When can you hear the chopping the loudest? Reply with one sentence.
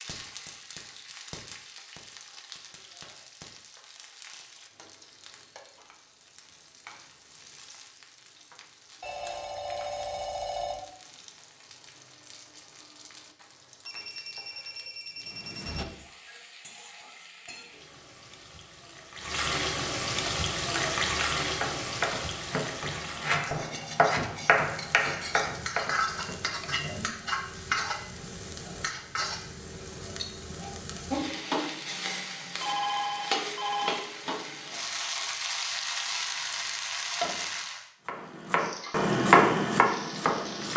The volume of the chopping peaks at 39 seconds.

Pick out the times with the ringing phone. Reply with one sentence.
You can hear the ringing phone from 9.0 to 10.8 s, from 13.8 to 15.8 s and from 32.6 to 34.0 s.